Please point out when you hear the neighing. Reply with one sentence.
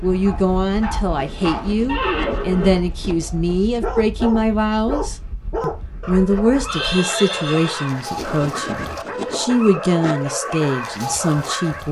The neighing can be heard from 1.9 to 3.6 s and from 6.7 to 7.9 s.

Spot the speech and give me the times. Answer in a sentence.
You can hear the speech from 0.0 to 11.8 s.